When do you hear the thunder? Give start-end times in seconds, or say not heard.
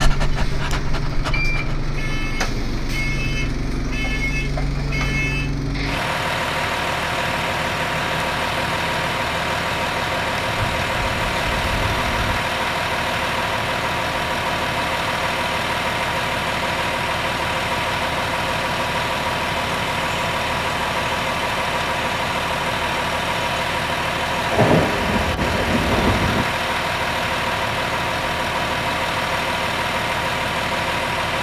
10.4-12.4, 24.5-26.4.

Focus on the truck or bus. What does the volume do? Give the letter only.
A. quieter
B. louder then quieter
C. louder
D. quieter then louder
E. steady
E.